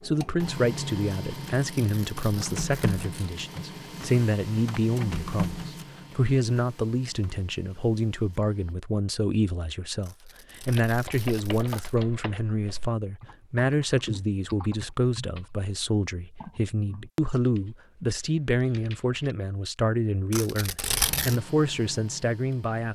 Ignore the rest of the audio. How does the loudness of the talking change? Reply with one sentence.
The loudness of the talking stays about the same.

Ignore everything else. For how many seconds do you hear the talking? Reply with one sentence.
The talking can be heard for 23 seconds in total.